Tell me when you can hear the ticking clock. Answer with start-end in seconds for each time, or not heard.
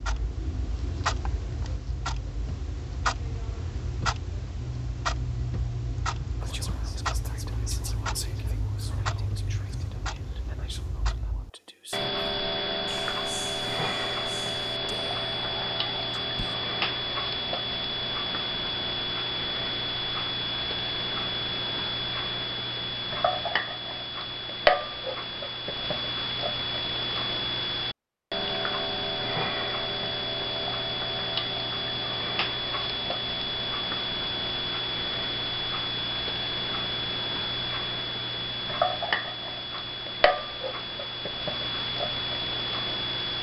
0.0-43.3.